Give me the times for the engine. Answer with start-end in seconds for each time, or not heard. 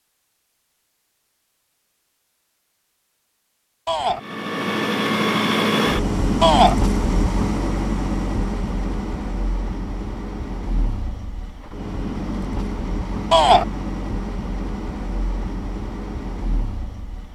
4.2-17.3.